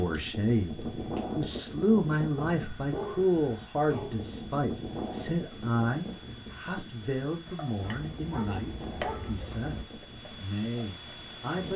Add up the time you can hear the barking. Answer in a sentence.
You can hear the barking for 4 seconds altogether.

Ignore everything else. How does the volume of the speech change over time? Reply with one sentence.
The volume of the speech goes down.